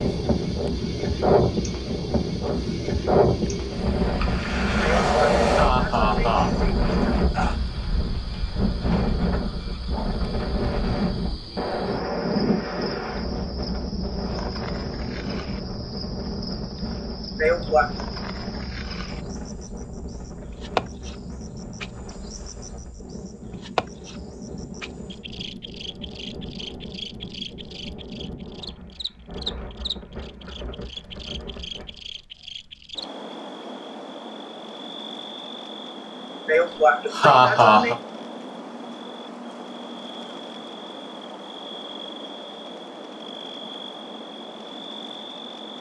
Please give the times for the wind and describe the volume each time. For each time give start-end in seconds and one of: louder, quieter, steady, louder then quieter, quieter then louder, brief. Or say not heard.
0.0-32.2 quieter.